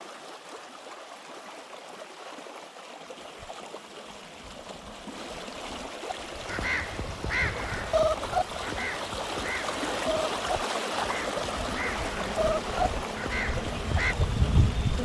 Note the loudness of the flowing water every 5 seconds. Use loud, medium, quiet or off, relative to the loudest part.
medium, loud, loud.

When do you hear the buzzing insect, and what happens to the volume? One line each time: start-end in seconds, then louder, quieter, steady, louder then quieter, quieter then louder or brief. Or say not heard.
3.0-15.0 louder.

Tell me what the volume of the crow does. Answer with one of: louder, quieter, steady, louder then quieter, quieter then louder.
quieter then louder.